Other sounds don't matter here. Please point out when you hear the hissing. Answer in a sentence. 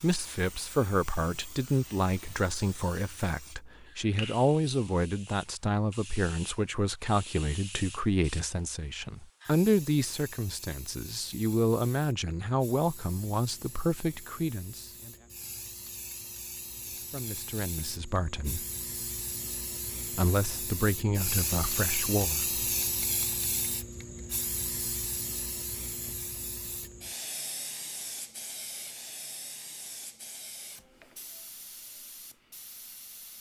You can hear the hissing from 0.0 to 33.3 s.